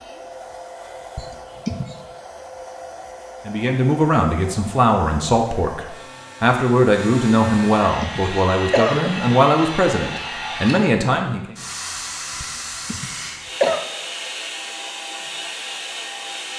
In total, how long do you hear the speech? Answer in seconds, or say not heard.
8 s.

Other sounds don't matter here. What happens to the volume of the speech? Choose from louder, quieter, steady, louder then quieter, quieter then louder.
steady.